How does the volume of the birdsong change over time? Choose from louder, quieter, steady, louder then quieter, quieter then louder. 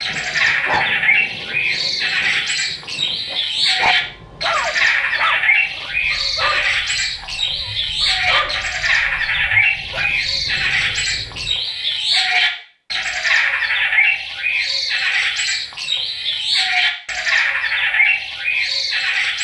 steady.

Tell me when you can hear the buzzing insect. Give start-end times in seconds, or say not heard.
not heard.